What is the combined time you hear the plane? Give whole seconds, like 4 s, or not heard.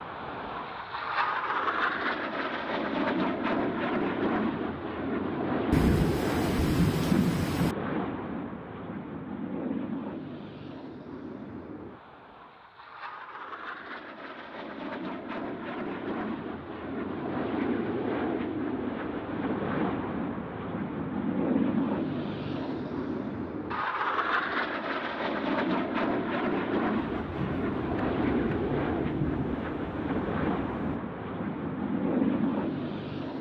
33 s.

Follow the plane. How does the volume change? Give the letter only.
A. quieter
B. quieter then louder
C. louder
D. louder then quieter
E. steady
B.